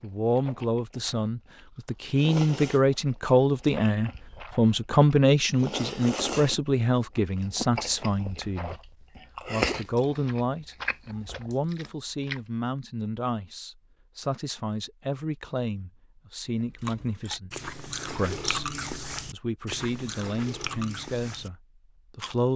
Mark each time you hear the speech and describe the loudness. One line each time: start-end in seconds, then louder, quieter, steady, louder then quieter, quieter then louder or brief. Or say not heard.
0.0-17.5 quieter
18.1-22.5 louder then quieter.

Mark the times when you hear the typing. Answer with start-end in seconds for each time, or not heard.
not heard.